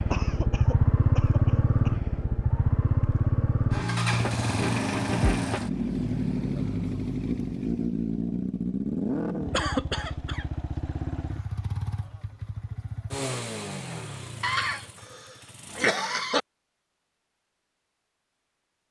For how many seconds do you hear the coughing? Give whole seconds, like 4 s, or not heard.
5 s.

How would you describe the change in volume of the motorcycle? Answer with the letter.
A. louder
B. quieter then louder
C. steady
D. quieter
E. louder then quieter
D.